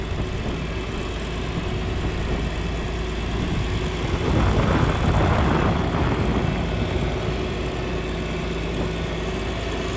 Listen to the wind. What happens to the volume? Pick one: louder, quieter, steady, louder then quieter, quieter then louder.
louder then quieter.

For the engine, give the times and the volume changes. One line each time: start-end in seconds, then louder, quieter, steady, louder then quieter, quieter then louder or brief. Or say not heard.
0.0-9.9 steady.